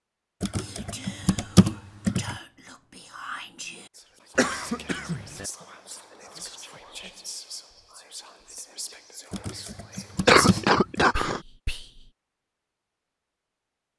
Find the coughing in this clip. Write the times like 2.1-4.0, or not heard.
4.3-5.5, 10.2-11.4.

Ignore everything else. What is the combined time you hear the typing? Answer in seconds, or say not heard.
4 s.